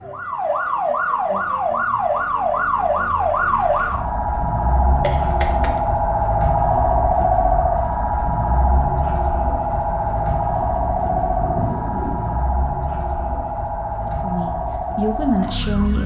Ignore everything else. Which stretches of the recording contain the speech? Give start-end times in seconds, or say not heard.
14.0-16.0.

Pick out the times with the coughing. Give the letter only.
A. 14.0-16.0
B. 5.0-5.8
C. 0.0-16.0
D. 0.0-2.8
B.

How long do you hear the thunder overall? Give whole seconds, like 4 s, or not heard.
3 s.